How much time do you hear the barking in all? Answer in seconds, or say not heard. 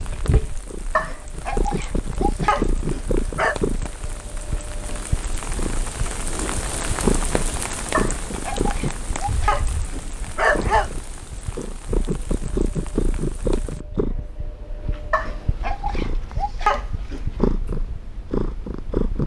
8 s.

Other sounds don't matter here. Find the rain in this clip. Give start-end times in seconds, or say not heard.
0.0-13.8.